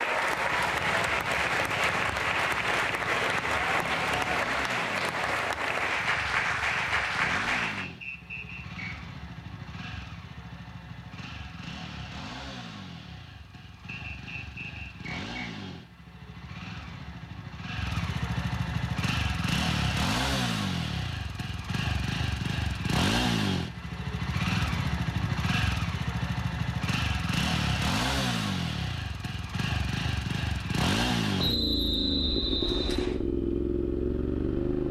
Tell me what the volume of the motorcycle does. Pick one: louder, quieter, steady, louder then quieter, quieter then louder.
louder.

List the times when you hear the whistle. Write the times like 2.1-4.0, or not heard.
7.8-8.9, 13.9-15.4, 31.4-33.2.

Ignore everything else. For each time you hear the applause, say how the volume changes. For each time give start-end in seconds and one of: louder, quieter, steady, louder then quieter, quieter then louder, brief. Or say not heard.
0.0-7.9 steady.